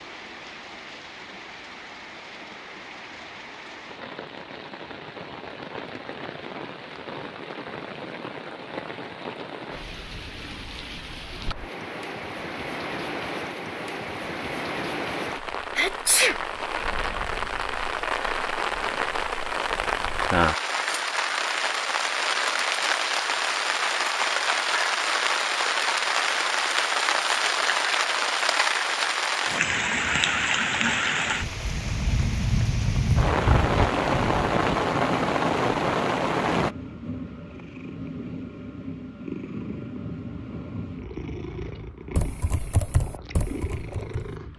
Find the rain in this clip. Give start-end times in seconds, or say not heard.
0.0-36.8.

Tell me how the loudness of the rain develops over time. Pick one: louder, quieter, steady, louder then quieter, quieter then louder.
louder.